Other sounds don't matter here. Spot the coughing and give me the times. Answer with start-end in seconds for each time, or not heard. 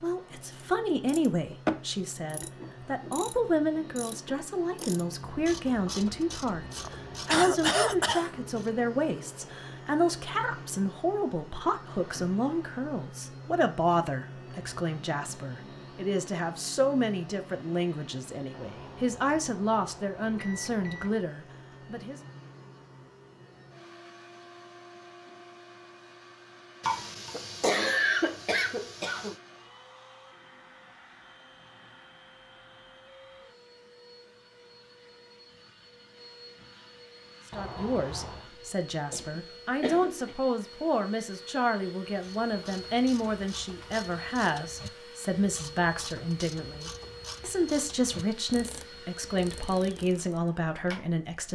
6.8-8.3, 26.8-29.4, 39.1-40.4.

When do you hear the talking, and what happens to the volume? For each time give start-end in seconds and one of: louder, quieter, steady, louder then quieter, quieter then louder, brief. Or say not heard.
0.0-22.2 steady
37.5-51.5 steady.